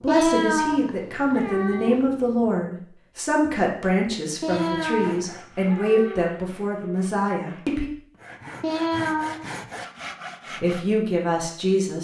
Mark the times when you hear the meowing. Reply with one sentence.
You can hear the meowing from 0.1 to 2.0 s, from 4.4 to 6.3 s and from 8.6 to 9.5 s.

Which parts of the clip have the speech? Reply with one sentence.
The speech can be heard from 0.0 to 7.9 s and from 10.6 to 11.9 s.